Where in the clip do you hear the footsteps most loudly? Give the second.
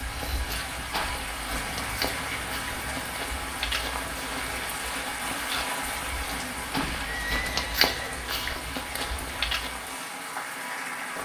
8 s.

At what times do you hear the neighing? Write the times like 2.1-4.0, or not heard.
1.6-3.2, 6.3-8.3.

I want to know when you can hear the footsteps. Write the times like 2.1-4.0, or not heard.
0.0-9.9.